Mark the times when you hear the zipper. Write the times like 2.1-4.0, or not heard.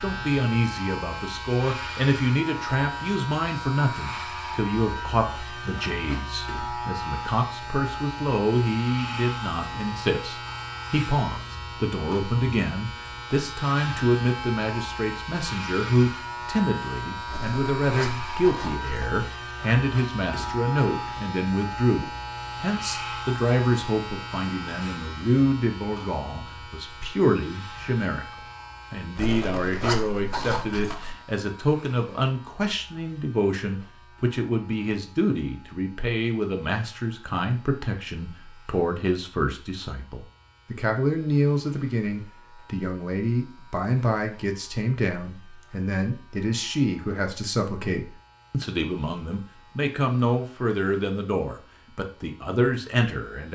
17.2-19.2, 29.1-31.1.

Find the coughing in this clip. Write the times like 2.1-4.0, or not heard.
not heard.